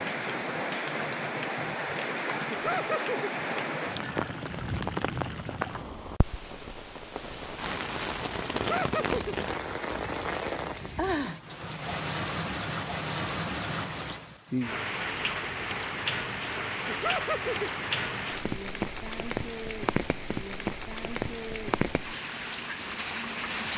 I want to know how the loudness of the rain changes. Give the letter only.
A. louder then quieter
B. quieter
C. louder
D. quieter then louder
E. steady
E.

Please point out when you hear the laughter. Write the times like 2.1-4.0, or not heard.
2.5-3.3, 8.5-9.3, 16.9-17.7.